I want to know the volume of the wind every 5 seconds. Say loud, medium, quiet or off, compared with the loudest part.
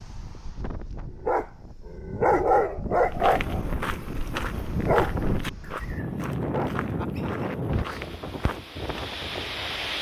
medium, loud.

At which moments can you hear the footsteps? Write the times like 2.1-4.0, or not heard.
3.0-9.2.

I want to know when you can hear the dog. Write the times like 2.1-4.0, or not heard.
1.2-6.7.